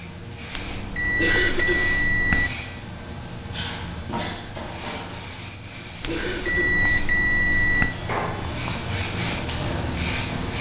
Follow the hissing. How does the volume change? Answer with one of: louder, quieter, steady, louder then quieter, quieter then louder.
louder.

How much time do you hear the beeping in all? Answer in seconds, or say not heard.
4 s.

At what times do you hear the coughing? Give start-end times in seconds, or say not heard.
1.1-1.9, 6.0-6.8.